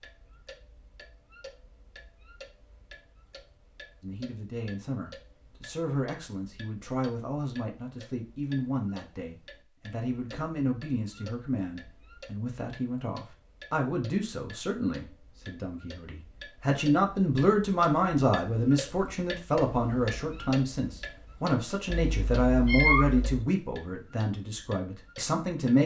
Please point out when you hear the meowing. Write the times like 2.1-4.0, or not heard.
21.9-23.4.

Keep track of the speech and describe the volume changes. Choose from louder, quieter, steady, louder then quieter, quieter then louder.
louder.